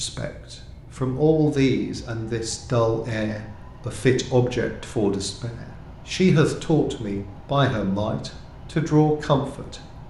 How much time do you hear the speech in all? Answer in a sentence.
You can hear the speech for 10 seconds altogether.